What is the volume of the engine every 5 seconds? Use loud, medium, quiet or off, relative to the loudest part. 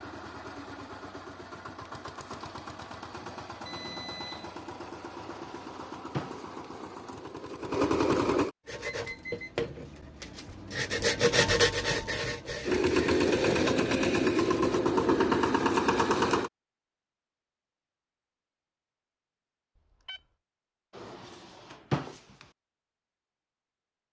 quiet, medium, loud, loud, off.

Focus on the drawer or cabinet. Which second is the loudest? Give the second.
22 s.